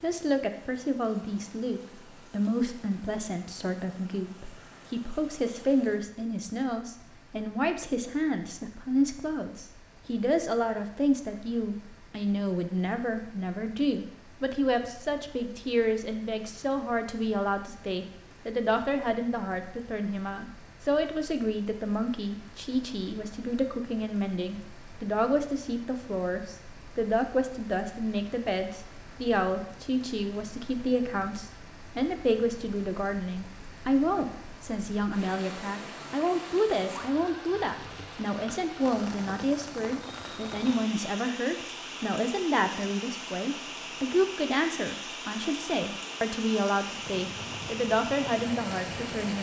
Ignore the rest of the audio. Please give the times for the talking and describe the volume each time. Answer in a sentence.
The talking can be heard from 0.0 to 49.3 s, at a steady volume.